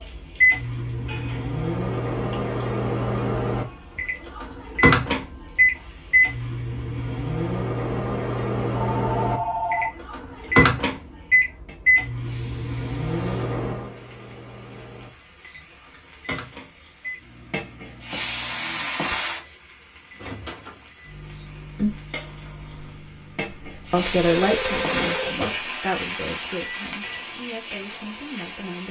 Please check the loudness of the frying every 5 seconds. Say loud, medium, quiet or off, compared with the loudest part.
quiet, quiet, quiet, loud, loud, loud.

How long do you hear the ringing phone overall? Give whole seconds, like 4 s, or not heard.
2 s.